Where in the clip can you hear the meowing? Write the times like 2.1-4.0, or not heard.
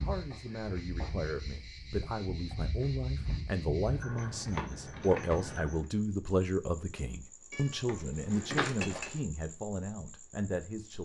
7.5-9.2.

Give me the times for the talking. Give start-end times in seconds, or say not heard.
0.0-10.9.